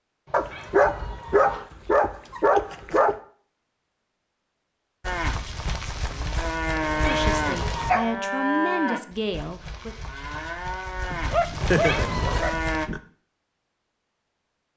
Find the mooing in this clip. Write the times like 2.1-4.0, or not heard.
5.0-12.9.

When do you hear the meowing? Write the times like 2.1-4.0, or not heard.
0.2-1.6, 6.8-8.0, 11.6-12.4.